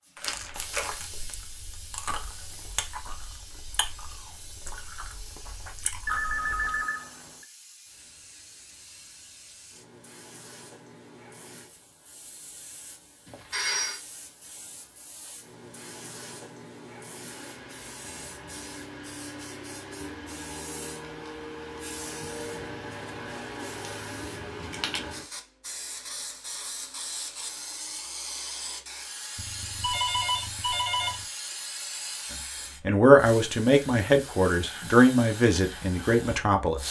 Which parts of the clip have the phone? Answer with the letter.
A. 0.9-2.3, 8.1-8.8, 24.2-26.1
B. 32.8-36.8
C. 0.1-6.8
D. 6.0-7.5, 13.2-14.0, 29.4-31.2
D.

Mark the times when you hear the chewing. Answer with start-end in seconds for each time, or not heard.
0.1-6.8.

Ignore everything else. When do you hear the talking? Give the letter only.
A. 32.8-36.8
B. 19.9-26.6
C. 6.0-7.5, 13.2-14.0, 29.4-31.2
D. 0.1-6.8
A.